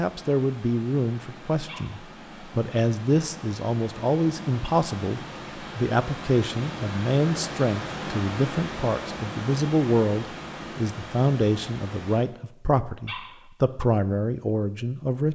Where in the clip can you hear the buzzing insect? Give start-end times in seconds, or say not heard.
not heard.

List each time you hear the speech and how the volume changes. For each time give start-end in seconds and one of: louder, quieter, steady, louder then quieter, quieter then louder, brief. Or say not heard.
0.0-15.3 steady.